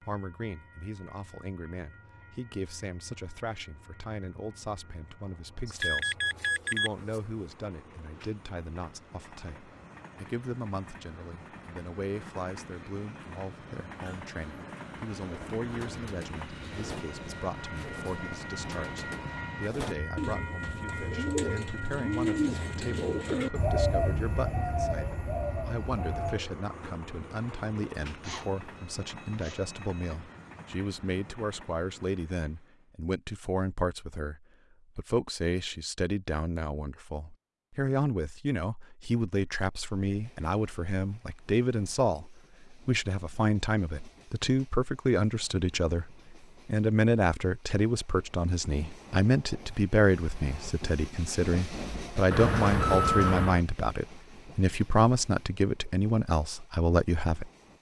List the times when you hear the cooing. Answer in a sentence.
You can hear the cooing from 15.2 to 26.4 s.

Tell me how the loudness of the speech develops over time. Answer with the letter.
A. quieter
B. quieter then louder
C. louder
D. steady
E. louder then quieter
C.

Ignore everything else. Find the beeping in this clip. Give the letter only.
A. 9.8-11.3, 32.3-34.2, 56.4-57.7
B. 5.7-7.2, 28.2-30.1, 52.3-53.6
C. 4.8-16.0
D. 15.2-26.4
B.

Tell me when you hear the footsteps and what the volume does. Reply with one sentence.
You can't hear the footsteps here.